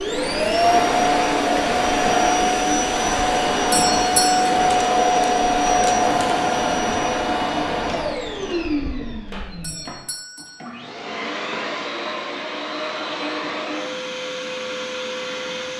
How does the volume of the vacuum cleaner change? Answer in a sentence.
The loudness of the vacuum cleaner goes down.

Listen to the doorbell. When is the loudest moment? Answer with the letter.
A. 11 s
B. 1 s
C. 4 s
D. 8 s
C.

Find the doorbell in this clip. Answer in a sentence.
The doorbell can be heard from 3.7 to 4.5 s and from 9.6 to 10.7 s.